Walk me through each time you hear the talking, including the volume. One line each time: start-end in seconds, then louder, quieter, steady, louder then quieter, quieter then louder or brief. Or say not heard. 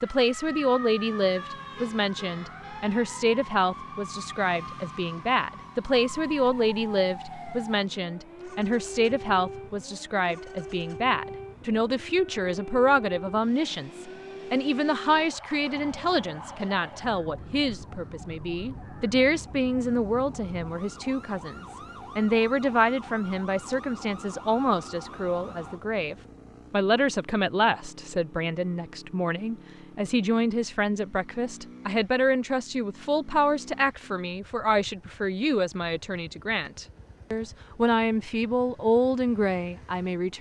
0.0-40.3 steady.